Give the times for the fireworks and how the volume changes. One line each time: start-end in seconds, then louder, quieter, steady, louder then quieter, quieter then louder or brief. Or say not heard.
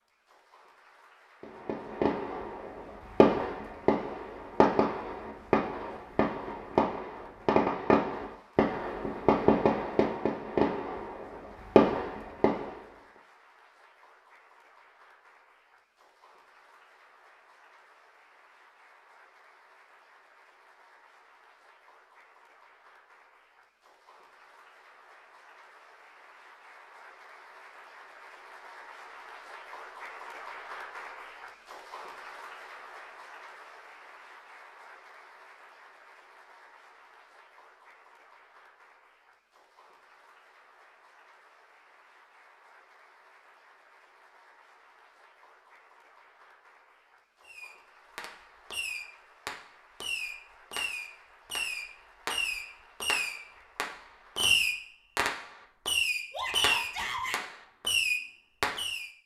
1.4-12.8 steady
47.4-59.1 louder.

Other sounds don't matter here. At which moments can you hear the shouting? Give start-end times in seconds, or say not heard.
56.3-57.4.